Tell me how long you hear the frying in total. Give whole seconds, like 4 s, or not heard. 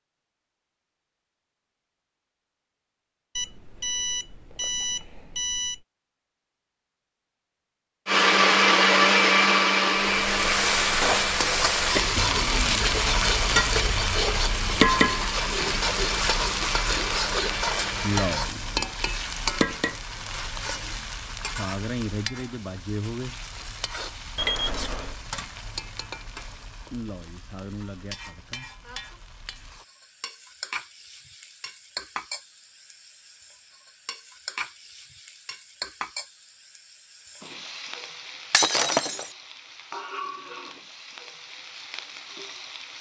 33 s.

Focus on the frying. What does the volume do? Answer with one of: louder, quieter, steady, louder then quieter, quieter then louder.
quieter.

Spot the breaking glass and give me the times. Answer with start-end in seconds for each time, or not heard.
38.5-39.3.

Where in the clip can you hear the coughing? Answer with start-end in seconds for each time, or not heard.
not heard.